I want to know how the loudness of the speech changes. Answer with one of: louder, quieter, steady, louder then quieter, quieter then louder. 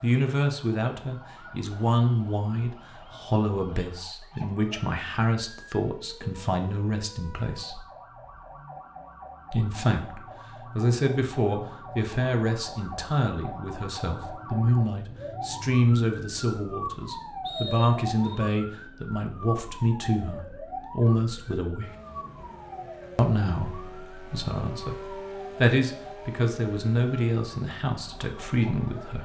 steady.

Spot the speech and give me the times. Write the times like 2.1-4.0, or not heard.
0.0-7.8, 9.5-21.9, 23.1-29.2.